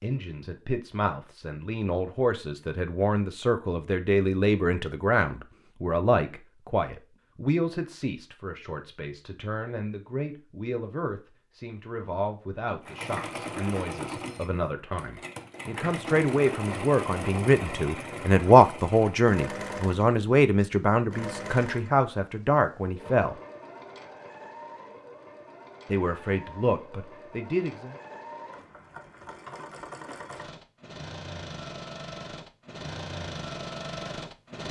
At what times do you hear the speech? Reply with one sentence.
You can hear the speech from 0.0 to 23.4 s and from 25.9 to 27.9 s.